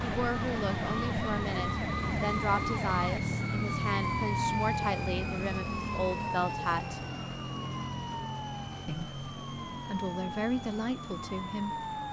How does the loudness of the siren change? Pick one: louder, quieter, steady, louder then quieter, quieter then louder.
quieter.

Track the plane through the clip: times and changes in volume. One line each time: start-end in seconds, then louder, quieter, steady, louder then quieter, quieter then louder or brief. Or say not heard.
0.0-12.0 quieter.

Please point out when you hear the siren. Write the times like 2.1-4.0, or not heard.
0.0-12.0.